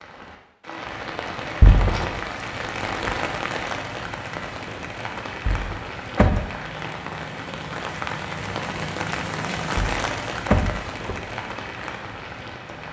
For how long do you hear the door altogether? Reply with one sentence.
You can hear the door for 3 seconds altogether.